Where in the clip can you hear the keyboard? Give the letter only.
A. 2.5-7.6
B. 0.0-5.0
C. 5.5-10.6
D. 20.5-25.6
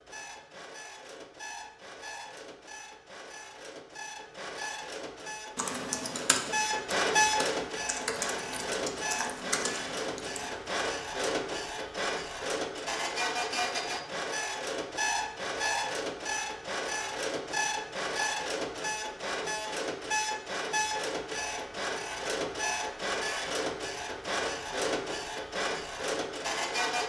C.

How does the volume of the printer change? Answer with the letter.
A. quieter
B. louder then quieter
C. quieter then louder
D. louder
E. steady
D.